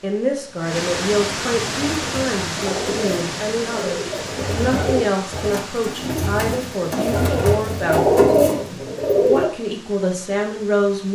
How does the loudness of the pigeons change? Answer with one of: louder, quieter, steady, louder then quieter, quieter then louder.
louder.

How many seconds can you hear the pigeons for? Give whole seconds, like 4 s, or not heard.
8 s.